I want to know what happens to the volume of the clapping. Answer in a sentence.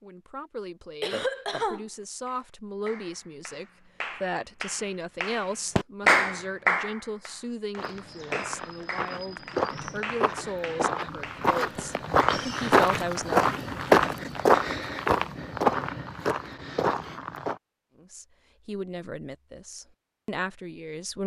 The volume of the clapping goes up, then down.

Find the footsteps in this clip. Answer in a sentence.
The footsteps can be heard from 7.8 to 17.6 s.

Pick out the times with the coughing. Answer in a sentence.
The coughing can be heard from 1.0 to 2.4 s.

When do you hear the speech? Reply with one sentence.
The speech can be heard from 0.0 to 13.4 s and from 17.9 to 21.2 s.